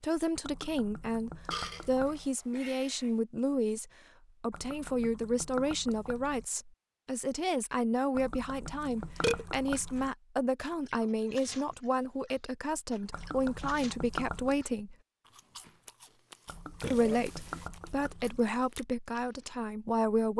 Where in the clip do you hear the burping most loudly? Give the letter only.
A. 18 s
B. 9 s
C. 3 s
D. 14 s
B.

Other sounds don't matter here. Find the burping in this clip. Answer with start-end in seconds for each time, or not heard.
1.5-3.1, 8.8-9.4, 16.8-17.7.